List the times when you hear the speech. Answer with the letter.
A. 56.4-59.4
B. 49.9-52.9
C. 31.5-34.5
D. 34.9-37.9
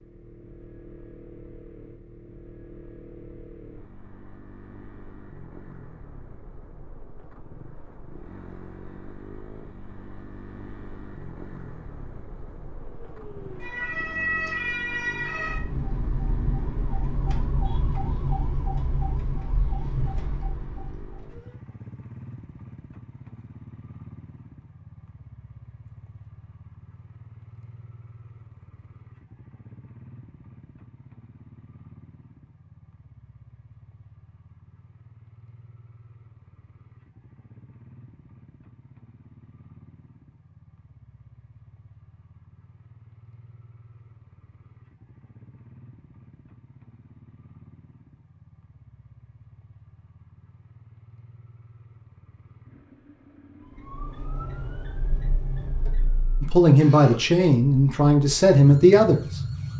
A.